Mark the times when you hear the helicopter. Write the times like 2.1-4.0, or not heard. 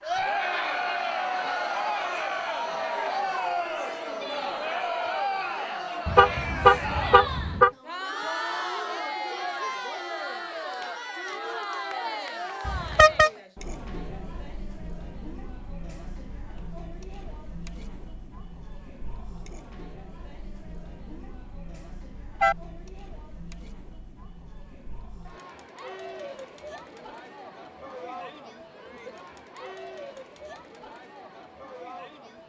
not heard.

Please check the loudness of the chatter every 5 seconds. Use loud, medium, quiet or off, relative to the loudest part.
loud, loud, medium, quiet, quiet, quiet, quiet.